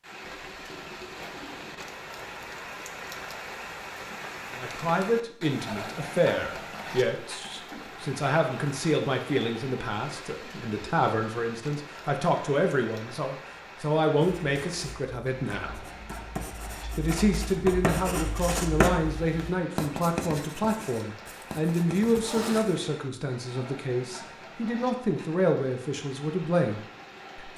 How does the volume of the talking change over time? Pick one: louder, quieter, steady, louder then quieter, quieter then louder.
steady.